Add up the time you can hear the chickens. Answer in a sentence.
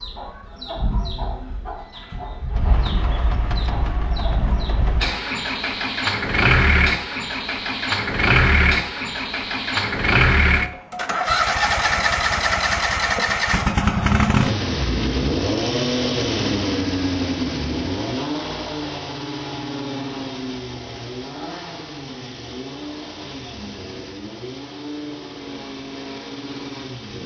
The chickens can be heard for 5 seconds in total.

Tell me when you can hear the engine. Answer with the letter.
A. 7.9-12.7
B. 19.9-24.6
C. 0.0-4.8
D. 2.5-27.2
D.